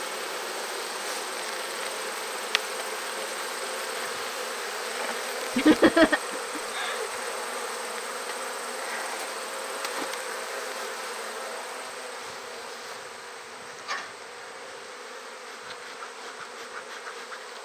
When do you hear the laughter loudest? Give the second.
6 s.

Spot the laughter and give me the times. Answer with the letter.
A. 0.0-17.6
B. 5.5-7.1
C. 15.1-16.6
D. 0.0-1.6
B.